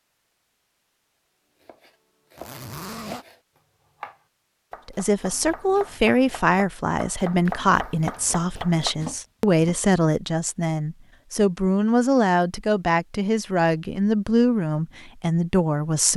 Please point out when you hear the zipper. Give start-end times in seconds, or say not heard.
2.4-3.2.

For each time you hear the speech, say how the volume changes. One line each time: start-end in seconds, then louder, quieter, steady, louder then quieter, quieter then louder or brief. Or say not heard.
4.8-16.1 steady.